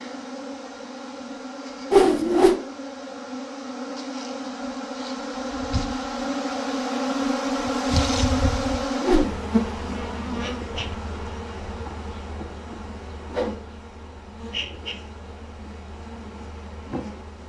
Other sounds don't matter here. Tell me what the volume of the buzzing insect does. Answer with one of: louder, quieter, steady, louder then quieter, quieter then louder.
louder then quieter.